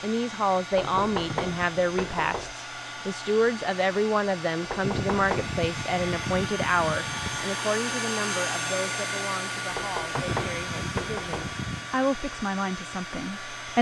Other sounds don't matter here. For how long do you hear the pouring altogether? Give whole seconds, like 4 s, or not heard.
6 s.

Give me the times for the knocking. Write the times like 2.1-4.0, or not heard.
0.7-2.5, 4.7-5.5, 9.7-11.6.